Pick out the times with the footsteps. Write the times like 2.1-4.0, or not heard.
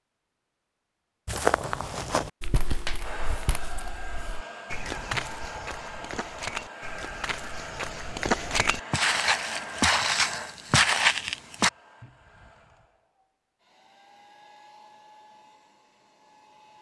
1.2-11.7.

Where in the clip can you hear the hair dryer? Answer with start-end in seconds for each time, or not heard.
3.0-16.7.